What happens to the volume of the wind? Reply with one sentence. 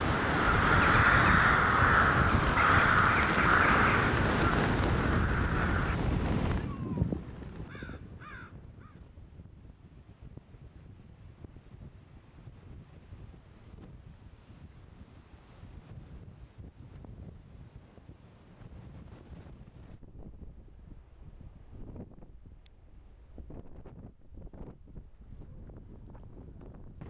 The volume of the wind goes down.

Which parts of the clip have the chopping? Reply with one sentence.
The chopping can't be heard in this clip.